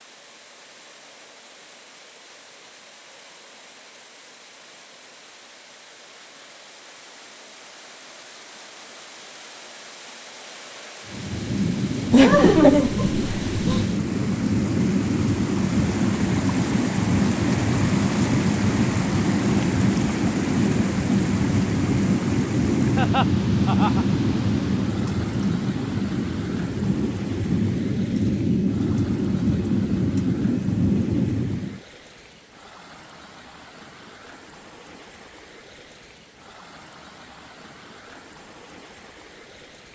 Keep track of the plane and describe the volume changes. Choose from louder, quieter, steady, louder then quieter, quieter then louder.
steady.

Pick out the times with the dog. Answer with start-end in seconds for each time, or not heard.
not heard.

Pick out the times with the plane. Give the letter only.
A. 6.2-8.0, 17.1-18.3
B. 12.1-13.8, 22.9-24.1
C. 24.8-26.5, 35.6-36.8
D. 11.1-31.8
D.